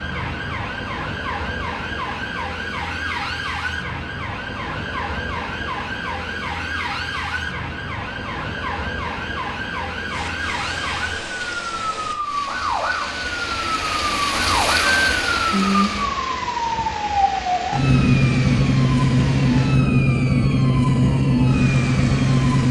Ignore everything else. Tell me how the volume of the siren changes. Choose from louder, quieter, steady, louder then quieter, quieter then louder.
louder.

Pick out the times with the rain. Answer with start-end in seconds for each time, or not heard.
10.1-22.6.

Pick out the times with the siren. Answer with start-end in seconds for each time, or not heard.
0.0-22.6.